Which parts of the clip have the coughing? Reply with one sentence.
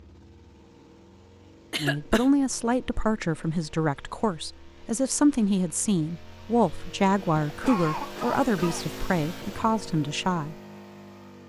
The coughing can be heard from 1.7 to 2.3 s and from 7.5 to 8.8 s.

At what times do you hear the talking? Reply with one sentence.
You can hear the talking from 1.8 to 10.6 s.